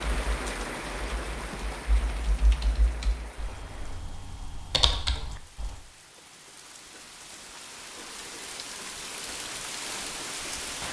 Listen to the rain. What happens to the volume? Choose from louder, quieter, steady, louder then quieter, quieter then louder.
quieter then louder.